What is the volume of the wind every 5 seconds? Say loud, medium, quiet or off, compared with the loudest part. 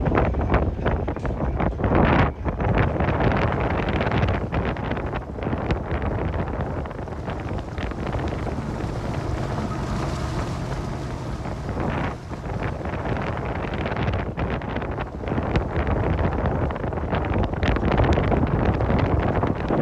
loud, medium, medium, loud.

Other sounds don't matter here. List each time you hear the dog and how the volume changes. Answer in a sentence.
You can't hear the dog here.